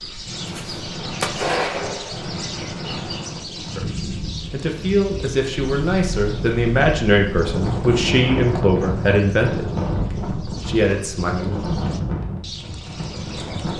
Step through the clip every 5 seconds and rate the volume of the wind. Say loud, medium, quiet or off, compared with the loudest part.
medium, loud, loud.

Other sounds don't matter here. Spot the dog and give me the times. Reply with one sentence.
The dog can't be heard in this clip.